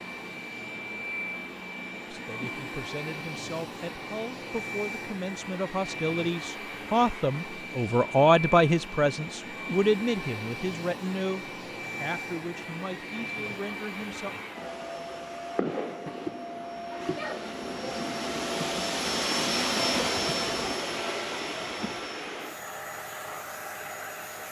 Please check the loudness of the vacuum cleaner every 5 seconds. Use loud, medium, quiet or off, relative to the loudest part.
medium, medium, medium, loud, loud.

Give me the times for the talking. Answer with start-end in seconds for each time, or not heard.
2.1-14.3.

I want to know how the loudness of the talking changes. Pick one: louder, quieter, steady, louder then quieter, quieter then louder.
louder then quieter.